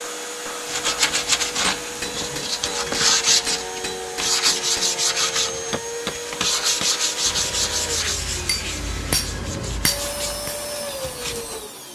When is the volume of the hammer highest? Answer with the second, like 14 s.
9 s.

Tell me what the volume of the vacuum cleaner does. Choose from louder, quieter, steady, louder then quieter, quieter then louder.
steady.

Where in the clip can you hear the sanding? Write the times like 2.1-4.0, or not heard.
0.7-11.4.